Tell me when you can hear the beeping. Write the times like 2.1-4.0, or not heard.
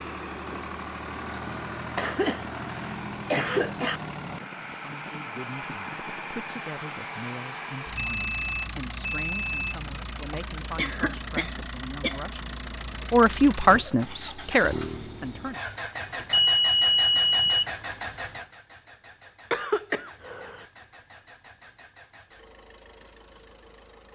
8.0-9.9, 16.2-17.6.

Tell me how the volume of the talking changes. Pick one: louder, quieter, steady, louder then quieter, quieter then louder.
louder.